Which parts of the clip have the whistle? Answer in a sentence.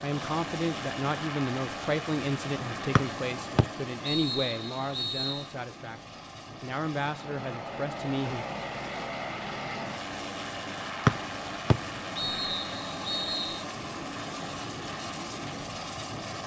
You can hear the whistle from 3.0 to 5.5 s and from 11.1 to 13.7 s.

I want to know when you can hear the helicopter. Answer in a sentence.
The helicopter can be heard from 0.0 to 16.4 s.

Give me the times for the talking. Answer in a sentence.
The talking can be heard from 0.0 to 8.4 s.